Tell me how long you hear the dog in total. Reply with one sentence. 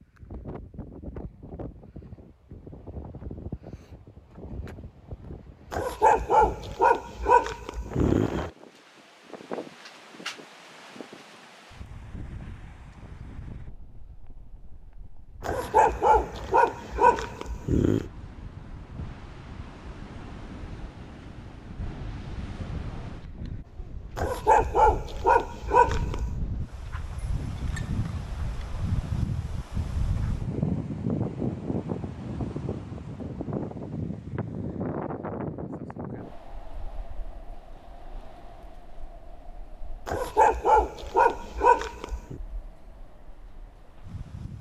The dog can be heard for 10 seconds in total.